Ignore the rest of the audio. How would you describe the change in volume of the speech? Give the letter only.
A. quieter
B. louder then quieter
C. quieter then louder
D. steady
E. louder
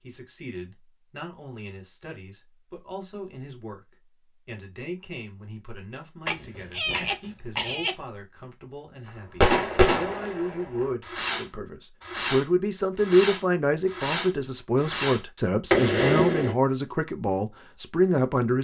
E.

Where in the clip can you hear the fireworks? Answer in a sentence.
The fireworks can be heard from 9.4 to 16.6 s.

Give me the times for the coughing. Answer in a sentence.
The coughing can be heard from 6.2 to 8.0 s.